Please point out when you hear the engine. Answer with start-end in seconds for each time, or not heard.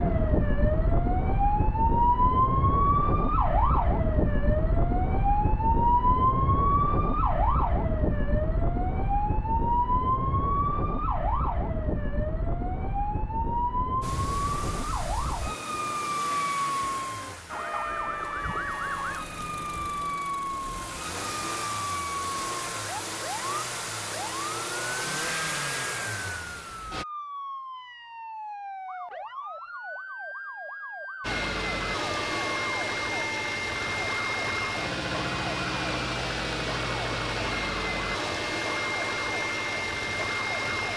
14.0-27.1, 31.2-40.9.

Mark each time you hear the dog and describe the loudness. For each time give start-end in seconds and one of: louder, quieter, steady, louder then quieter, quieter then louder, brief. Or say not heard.
not heard.